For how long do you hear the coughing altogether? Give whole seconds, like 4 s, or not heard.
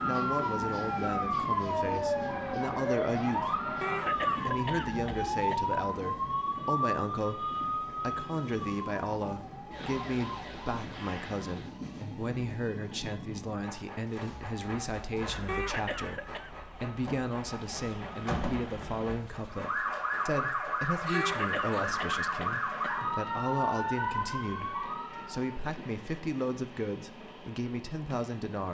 5 s.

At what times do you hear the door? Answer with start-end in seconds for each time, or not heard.
not heard.